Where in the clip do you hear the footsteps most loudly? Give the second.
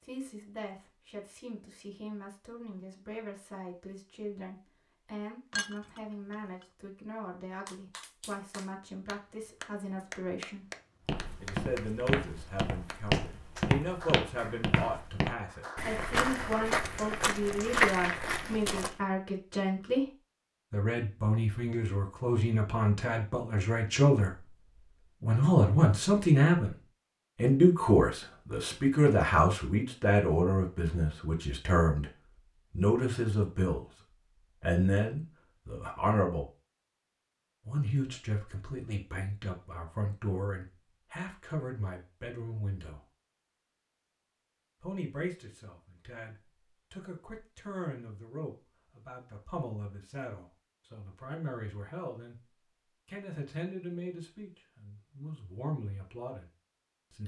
18 s.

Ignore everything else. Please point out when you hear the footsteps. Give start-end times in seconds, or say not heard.
11.1-18.9.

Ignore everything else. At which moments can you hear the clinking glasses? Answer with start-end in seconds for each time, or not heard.
5.5-6.7.